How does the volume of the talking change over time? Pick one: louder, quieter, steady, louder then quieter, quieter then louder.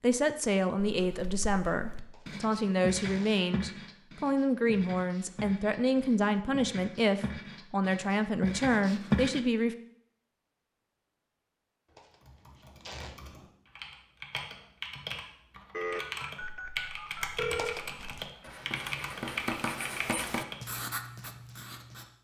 steady.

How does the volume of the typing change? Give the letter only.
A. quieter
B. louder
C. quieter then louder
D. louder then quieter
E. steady
B.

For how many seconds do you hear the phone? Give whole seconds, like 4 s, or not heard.
2 s.